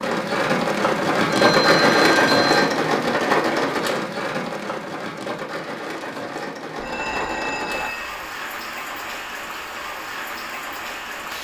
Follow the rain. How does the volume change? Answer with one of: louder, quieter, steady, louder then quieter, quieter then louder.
quieter.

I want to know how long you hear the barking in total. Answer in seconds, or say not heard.
not heard.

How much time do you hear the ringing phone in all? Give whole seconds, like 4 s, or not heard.
3 s.